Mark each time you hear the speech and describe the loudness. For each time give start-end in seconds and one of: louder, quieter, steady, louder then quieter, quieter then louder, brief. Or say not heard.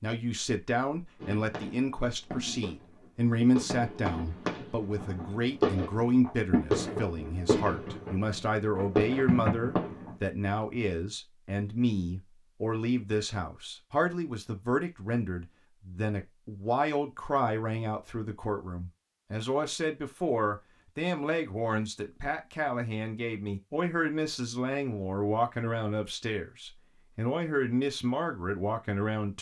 0.0-29.3 steady.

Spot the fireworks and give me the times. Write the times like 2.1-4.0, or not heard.
1.2-10.2.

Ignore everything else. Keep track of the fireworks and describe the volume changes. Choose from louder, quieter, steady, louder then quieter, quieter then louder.
louder.